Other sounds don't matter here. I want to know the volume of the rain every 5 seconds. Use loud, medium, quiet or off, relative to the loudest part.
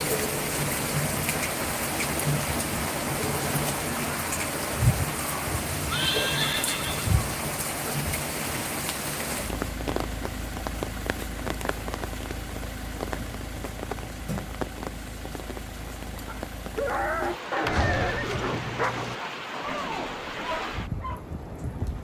loud, loud, medium, medium, medium.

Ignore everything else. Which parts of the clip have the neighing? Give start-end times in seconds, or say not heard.
5.8-7.2, 17.6-19.1.